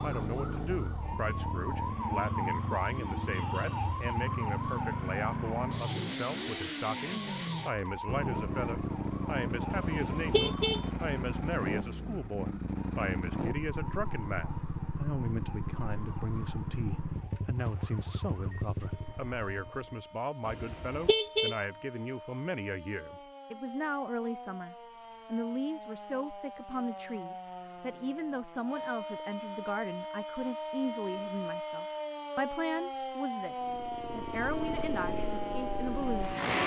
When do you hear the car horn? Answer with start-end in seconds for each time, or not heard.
9.7-10.8, 20.4-21.6.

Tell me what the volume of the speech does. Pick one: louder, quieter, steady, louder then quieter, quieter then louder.
steady.